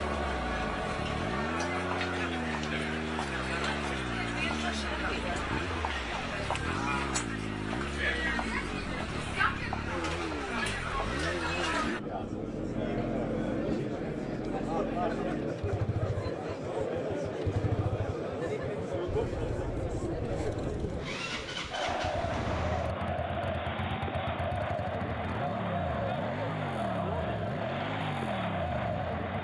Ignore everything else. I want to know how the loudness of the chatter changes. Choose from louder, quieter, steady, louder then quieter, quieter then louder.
steady.